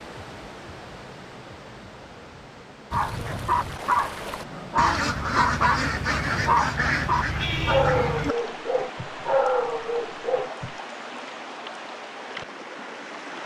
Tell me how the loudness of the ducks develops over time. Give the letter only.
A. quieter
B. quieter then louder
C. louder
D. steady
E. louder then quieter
C.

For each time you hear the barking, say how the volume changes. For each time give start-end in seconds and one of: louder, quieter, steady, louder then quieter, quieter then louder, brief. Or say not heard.
2.9-10.8 steady.